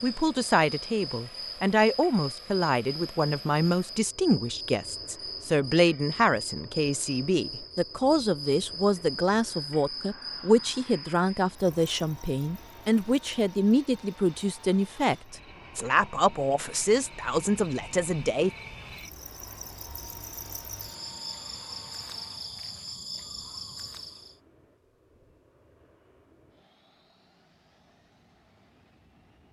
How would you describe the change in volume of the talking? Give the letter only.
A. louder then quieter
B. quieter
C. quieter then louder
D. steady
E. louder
D.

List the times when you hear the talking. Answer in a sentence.
You can hear the talking from 0.0 to 18.5 s.